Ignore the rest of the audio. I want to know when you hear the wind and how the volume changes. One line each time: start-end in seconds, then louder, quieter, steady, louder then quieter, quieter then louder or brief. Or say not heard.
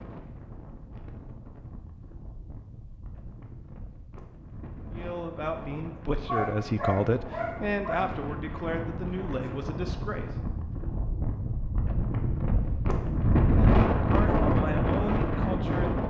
0.0-16.0 louder.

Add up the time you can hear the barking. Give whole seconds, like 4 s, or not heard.
2 s.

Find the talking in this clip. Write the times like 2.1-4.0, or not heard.
4.9-10.3, 13.6-16.0.